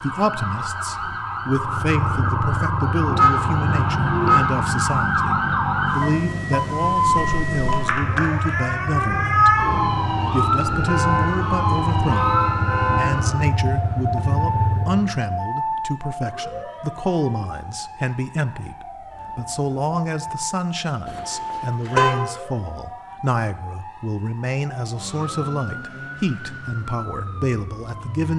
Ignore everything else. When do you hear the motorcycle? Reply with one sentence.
You can hear the motorcycle from 1.5 to 15.2 s.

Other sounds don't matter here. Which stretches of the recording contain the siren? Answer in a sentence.
You can hear the siren from 0.0 to 28.3 s.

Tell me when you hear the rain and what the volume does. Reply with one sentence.
You can't hear the rain here.